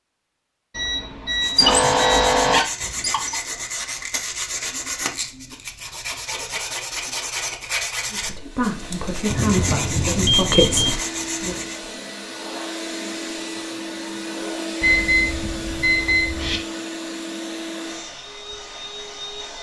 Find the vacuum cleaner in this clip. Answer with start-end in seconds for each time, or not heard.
8.3-19.5.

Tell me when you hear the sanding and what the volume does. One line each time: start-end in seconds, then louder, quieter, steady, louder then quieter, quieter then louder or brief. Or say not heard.
1.3-11.9 steady.